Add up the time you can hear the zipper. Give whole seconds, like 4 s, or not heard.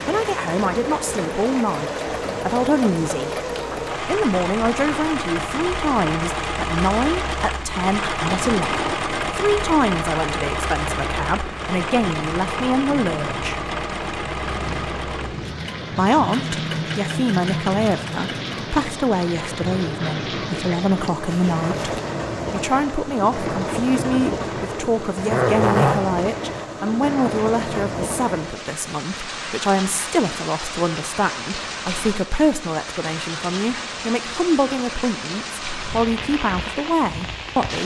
2 s.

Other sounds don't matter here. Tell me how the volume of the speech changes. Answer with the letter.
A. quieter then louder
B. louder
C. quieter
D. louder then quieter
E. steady
E.